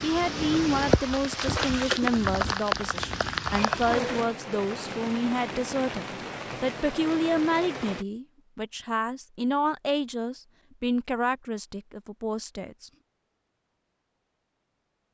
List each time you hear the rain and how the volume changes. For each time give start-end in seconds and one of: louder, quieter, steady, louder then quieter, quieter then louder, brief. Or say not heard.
0.0-8.1 quieter.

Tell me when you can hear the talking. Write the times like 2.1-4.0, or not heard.
0.0-12.9.